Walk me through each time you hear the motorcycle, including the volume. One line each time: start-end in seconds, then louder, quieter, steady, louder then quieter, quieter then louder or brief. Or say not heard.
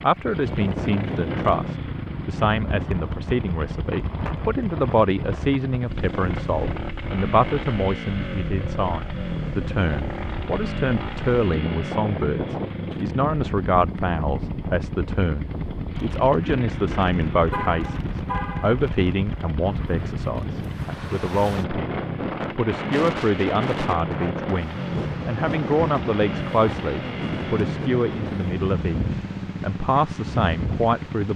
0.0-31.3 steady.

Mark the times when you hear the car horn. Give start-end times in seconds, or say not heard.
17.5-18.8.